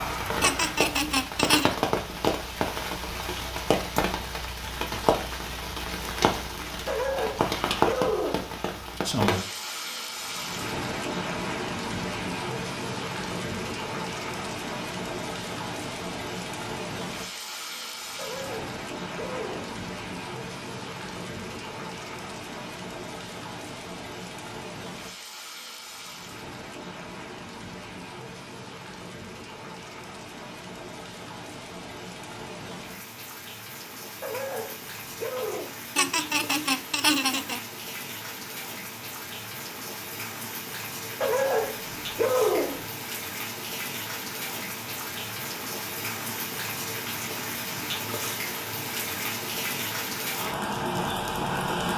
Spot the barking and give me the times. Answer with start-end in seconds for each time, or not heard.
6.8-8.6, 18.1-19.8, 34.2-35.8, 41.2-42.9.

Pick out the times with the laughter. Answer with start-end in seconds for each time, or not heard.
0.4-1.8, 36.0-37.6.